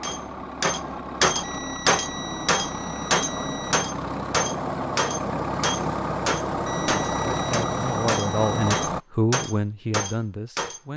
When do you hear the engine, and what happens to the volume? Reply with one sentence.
You can hear the engine from 0.0 to 9.0 s, getting louder.